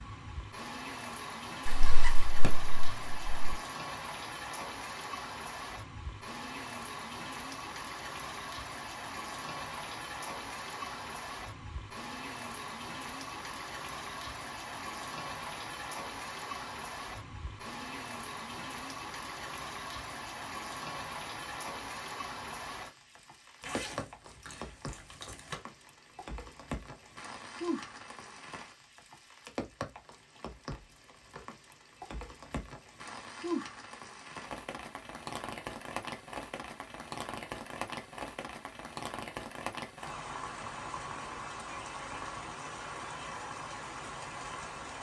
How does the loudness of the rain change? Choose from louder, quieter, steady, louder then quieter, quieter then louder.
steady.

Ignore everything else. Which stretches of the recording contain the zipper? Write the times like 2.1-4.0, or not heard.
1.6-3.5, 23.6-25.6.